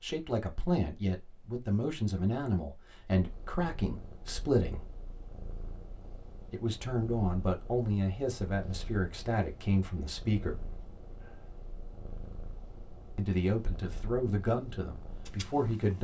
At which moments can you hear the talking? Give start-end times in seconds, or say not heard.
0.0-4.8, 6.5-10.7, 13.2-15.9.